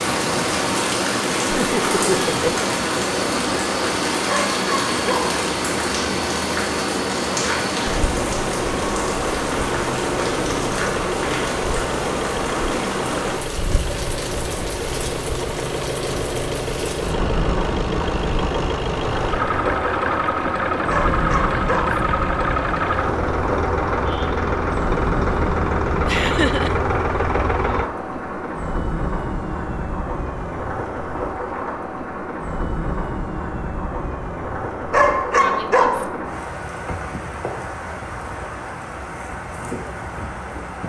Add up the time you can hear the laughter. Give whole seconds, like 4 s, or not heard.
2 s.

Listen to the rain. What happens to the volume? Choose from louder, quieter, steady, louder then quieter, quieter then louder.
quieter.